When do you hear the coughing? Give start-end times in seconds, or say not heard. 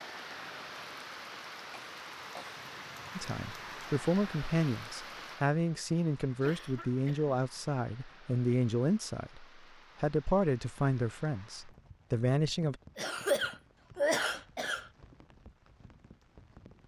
1.7-2.6, 6.4-7.3, 12.9-14.9.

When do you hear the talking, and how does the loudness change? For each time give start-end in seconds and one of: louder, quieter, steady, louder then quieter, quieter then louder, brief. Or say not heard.
3.1-12.8 steady.